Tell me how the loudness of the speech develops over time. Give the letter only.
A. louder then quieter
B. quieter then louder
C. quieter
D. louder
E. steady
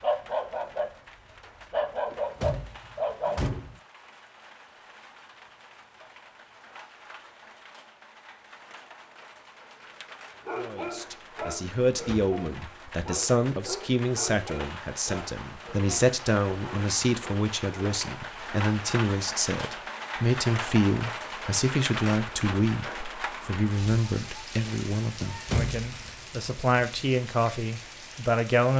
E.